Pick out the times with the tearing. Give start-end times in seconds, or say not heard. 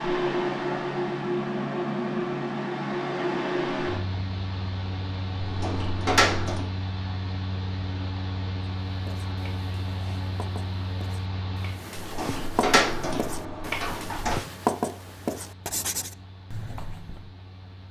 not heard.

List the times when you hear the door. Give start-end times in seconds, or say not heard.
5.4-6.7, 11.9-14.4.